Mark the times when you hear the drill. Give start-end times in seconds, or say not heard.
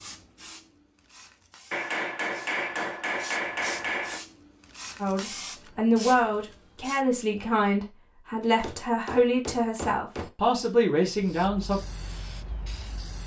not heard.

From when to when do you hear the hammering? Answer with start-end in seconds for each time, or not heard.
1.7-4.2, 8.6-10.3.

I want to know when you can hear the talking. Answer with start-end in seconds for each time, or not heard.
5.0-11.8.